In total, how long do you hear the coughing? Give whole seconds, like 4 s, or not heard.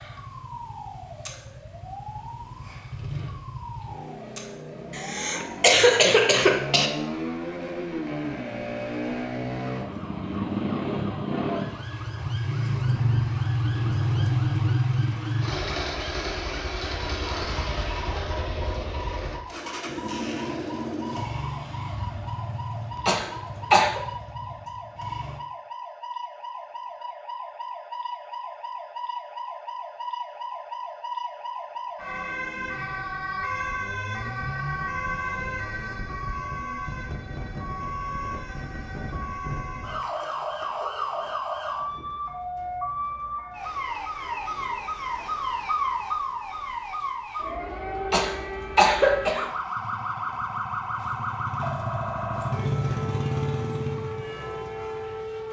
4 s.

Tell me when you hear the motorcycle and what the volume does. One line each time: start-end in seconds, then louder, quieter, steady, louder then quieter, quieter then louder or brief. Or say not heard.
0.0-25.4 louder then quieter
49.7-55.4 louder then quieter.